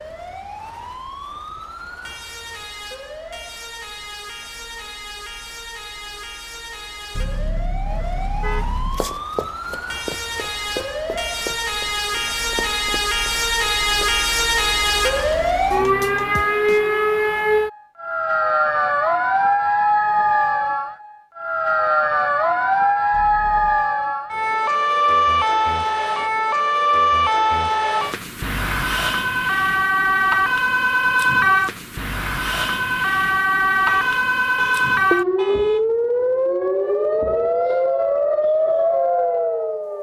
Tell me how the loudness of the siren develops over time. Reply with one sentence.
The volume of the siren goes up.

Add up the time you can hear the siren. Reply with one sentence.
You can hear the siren for 40 seconds altogether.